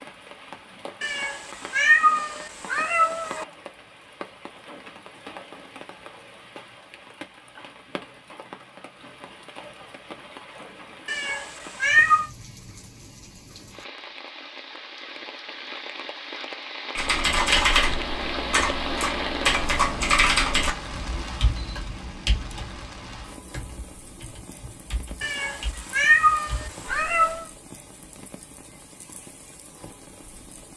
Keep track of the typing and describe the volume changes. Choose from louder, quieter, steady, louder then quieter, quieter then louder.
quieter.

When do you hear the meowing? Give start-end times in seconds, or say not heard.
1.0-3.5, 11.1-12.3, 25.2-27.4.